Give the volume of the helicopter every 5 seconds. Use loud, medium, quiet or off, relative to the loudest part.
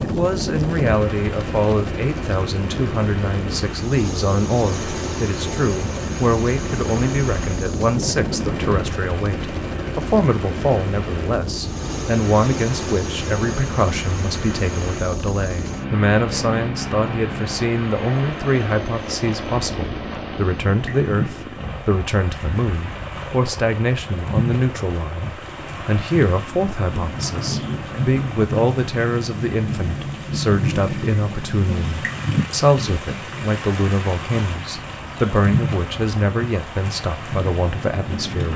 loud, loud, loud, loud, medium, medium, quiet, medium.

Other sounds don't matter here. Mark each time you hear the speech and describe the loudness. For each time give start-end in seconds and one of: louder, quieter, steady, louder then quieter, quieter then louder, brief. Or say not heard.
0.0-38.5 steady.